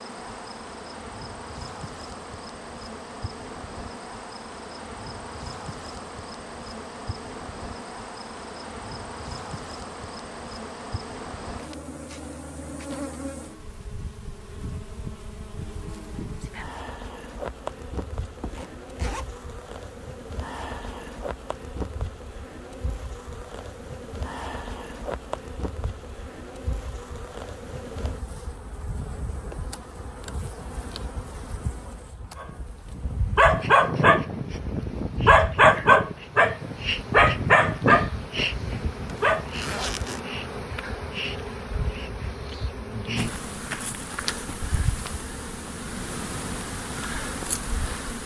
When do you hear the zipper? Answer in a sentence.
You can hear the zipper from 18.2 to 19.2 s and from 39.0 to 40.2 s.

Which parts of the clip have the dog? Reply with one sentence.
You can hear the dog from 32.4 to 39.5 s.